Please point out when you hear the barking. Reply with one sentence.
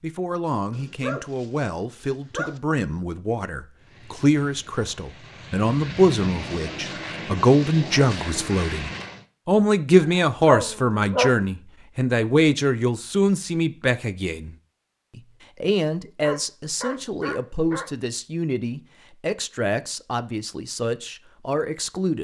You can hear the barking from 0.7 to 2.6 s, from 10.0 to 11.3 s and from 16.2 to 17.9 s.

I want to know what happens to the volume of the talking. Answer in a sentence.
The volume of the talking goes up, then down.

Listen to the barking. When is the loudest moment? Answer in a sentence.
The volume of the barking peaks at 11 seconds.